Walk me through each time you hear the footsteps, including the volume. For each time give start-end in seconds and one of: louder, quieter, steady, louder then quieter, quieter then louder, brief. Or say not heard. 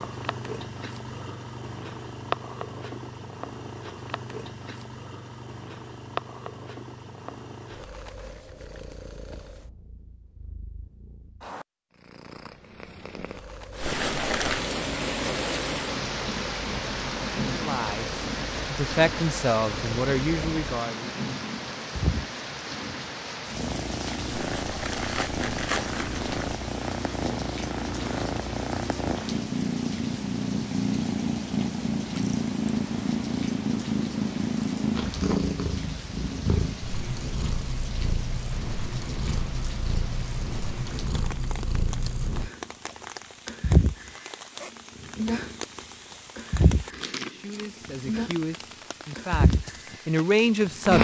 not heard.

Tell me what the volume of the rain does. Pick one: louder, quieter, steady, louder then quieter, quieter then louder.
quieter.